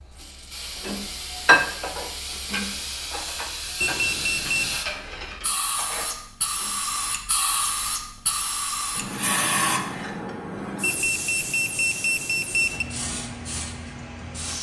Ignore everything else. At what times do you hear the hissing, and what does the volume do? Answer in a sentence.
You can hear the hissing from 0.0 to 14.5 s, getting louder then quieter.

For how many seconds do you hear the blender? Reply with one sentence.
You can't hear the blender here.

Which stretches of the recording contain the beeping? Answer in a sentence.
The beeping can be heard from 3.8 to 4.8 s and from 10.8 to 12.8 s.